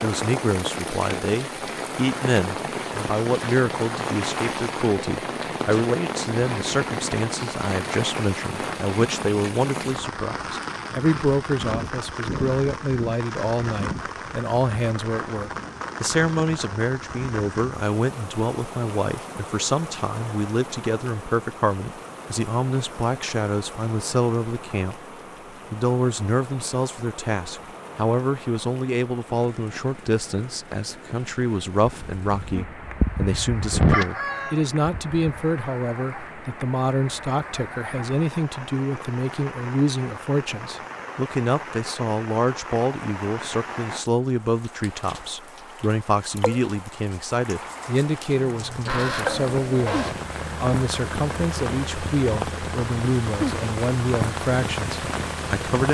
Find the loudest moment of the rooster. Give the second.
34 s.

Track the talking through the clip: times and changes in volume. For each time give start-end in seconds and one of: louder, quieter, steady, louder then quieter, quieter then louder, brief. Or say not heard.
0.0-24.9 steady
25.7-55.8 steady.